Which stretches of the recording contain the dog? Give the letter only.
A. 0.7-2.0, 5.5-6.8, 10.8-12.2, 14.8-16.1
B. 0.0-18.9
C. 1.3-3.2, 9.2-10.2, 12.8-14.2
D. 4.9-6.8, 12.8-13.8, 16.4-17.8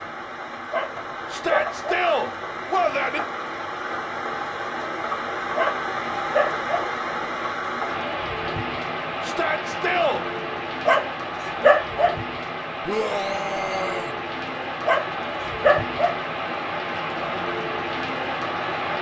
A.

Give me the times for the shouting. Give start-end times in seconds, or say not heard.
1.3-3.2, 9.2-10.2, 12.8-14.2.